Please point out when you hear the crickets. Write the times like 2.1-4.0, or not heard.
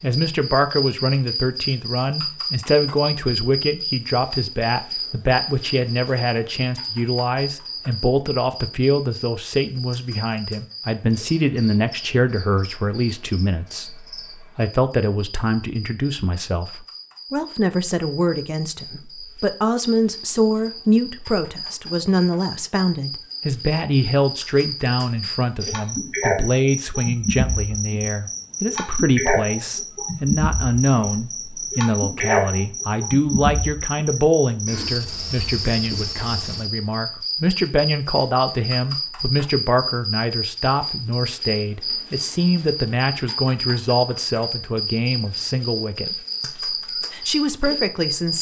0.0-48.3.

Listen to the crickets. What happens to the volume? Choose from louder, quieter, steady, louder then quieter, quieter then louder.
quieter then louder.